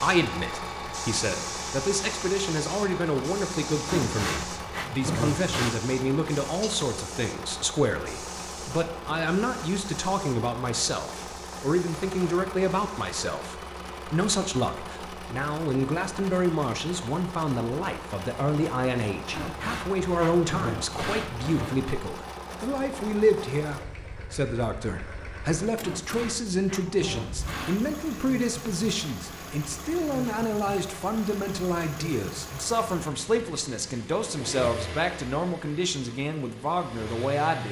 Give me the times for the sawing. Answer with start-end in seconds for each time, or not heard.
3.9-5.8, 19.3-21.9, 25.8-27.9.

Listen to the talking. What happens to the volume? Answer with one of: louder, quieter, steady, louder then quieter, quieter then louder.
steady.